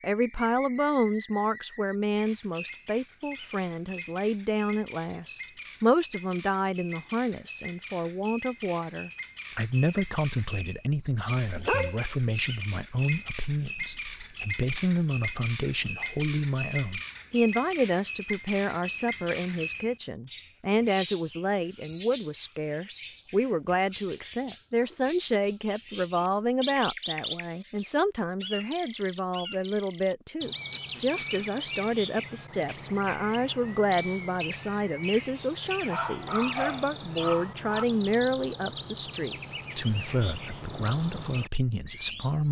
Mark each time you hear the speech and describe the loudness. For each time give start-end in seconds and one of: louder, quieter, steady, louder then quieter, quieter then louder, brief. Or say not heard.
0.0-42.4 steady.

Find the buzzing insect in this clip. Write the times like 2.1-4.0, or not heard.
not heard.